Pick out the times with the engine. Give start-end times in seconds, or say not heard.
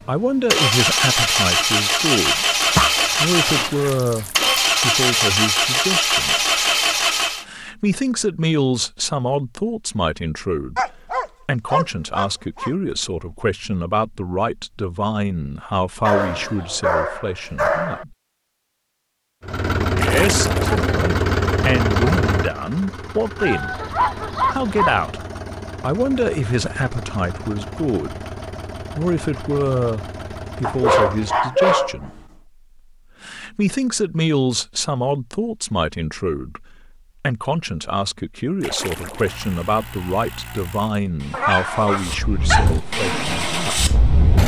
0.1-7.5, 19.4-31.5, 39.1-44.4.